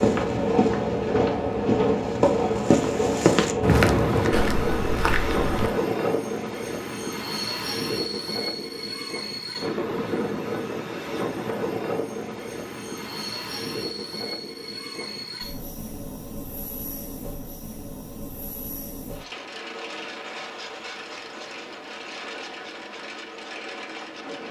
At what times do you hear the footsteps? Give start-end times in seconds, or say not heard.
0.0-5.7.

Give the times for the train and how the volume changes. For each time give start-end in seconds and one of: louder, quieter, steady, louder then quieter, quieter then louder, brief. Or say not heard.
0.0-24.4 quieter.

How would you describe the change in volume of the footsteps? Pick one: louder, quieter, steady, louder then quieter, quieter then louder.
louder then quieter.